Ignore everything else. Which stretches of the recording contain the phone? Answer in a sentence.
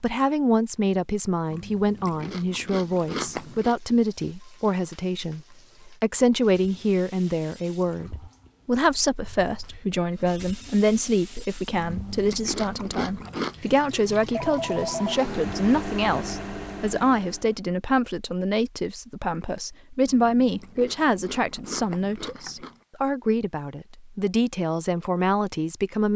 The phone can be heard from 14.3 to 15.2 s.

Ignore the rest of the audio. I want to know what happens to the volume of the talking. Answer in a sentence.
The loudness of the talking stays about the same.